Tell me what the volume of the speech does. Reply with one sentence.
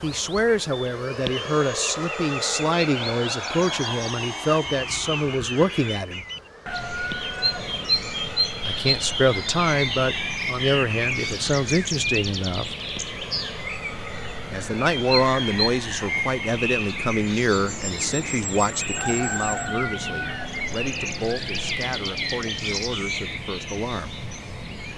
The volume of the speech goes down.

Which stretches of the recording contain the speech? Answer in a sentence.
The speech can be heard from 0.0 to 6.2 s, from 8.7 to 12.7 s and from 14.5 to 24.1 s.